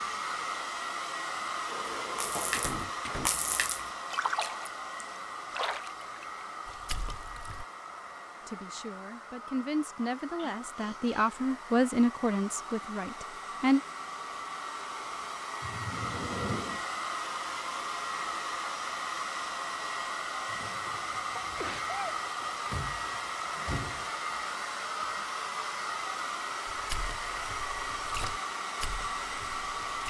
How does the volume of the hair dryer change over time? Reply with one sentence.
The loudness of the hair dryer goes down, then up.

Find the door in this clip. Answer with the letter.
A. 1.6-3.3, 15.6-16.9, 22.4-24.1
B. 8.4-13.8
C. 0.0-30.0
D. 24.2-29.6
A.